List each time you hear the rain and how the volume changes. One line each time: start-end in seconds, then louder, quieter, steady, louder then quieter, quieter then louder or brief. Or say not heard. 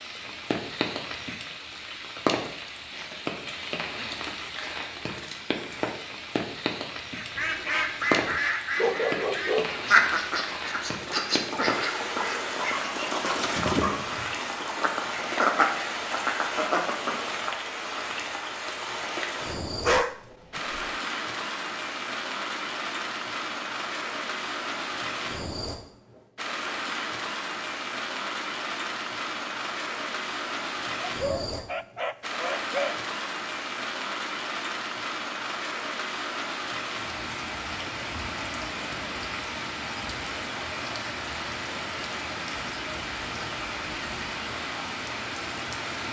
0.0-46.0 steady.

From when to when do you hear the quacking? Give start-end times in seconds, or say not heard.
7.2-17.5.